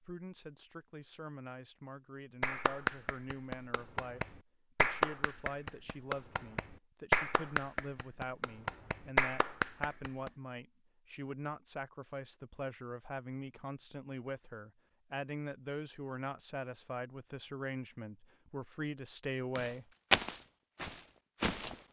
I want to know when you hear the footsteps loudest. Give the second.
20 s.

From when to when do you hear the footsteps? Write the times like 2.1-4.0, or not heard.
19.6-21.8.